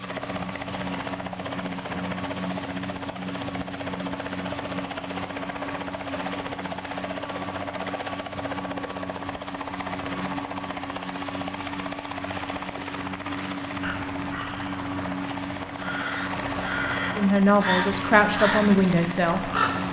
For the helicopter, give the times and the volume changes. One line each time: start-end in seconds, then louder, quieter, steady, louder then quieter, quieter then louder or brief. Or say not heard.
0.0-19.8 steady.